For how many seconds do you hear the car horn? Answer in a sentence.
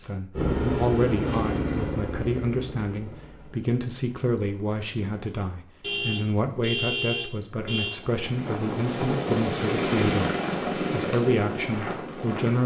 The car horn can be heard for 2 seconds in total.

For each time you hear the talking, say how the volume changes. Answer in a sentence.
The talking can be heard from 0.0 to 12.6 s, at a steady volume.